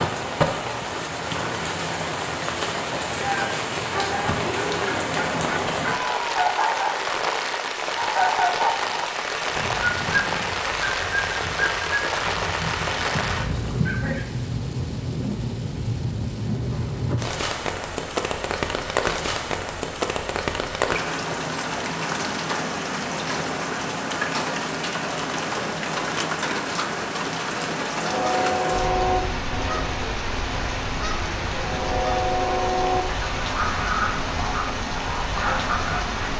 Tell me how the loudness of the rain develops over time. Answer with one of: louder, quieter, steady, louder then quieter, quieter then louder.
steady.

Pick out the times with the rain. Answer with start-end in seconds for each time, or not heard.
0.0-36.3.